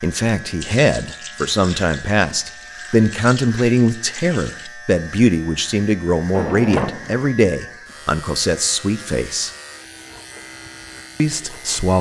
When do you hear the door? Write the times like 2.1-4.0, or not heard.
6.3-7.2.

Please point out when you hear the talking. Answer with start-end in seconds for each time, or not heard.
0.0-9.5, 11.2-11.9.